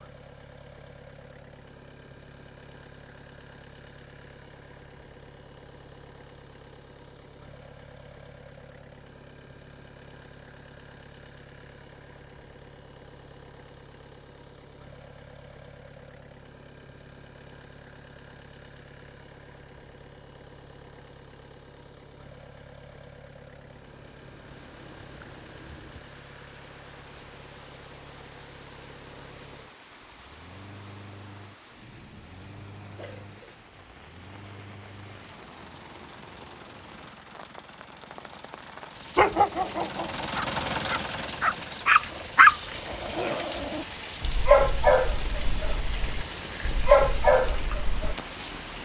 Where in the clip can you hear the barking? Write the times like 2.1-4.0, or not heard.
39.1-48.1.